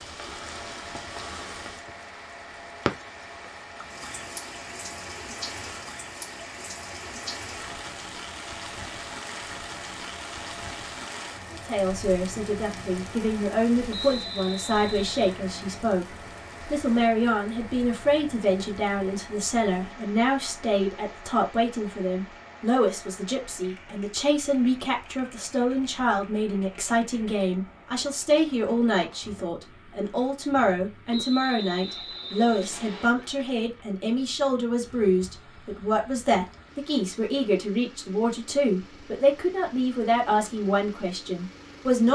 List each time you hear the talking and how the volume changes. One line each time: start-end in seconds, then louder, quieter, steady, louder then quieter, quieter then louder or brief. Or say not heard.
11.5-42.1 steady.